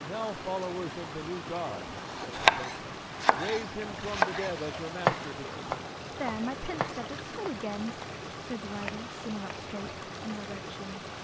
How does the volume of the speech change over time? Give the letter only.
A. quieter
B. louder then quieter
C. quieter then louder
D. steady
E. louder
D.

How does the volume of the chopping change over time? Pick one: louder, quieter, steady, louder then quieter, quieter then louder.
louder then quieter.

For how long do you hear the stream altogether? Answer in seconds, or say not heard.
11 s.